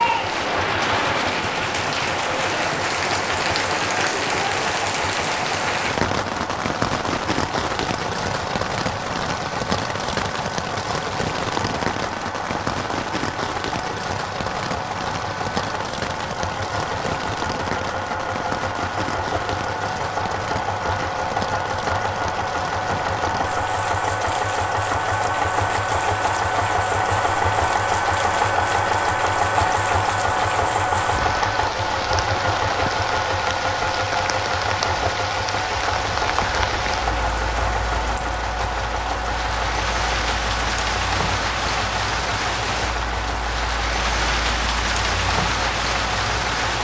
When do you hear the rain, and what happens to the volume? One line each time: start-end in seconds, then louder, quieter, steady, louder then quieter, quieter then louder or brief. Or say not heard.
0.0-46.7 quieter then louder.